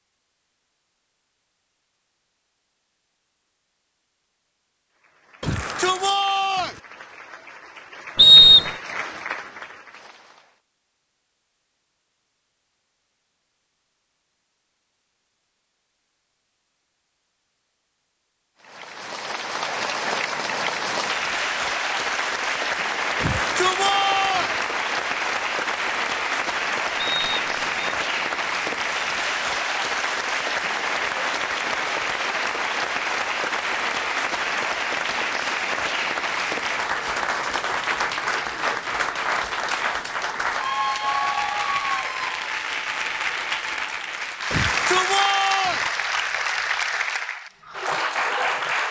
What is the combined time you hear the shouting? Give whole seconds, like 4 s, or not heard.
4 s.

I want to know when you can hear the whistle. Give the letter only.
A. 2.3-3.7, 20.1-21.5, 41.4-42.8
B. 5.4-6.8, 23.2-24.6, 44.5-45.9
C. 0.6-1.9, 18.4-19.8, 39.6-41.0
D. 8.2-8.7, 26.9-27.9
D.